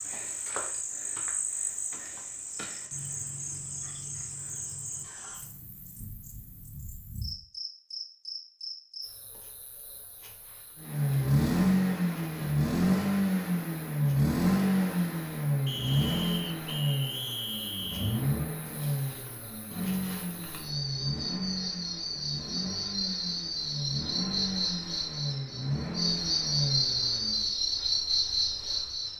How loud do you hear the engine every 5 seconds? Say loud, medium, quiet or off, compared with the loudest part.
off, off, loud, medium, medium, medium.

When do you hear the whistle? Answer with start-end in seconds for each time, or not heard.
15.7-18.2.